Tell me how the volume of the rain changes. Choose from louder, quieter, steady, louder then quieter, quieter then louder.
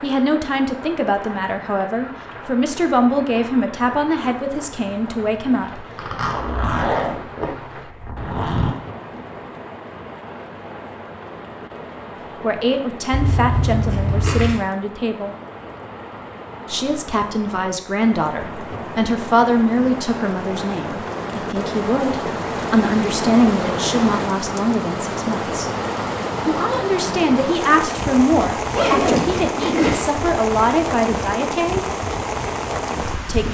louder.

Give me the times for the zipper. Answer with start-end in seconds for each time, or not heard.
6.0-8.8, 13.1-14.6, 28.7-30.0.